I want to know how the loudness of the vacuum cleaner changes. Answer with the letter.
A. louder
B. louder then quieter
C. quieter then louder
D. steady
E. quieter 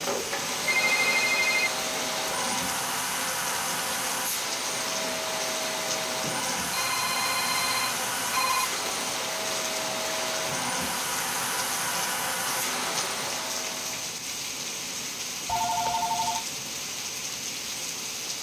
D.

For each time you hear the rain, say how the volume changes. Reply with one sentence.
The rain can be heard from 0.0 to 18.3 s, at a steady volume.